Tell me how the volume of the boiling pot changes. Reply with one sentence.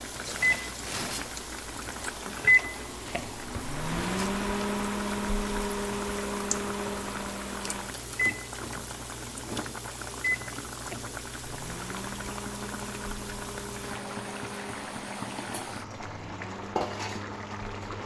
The loudness of the boiling pot stays about the same.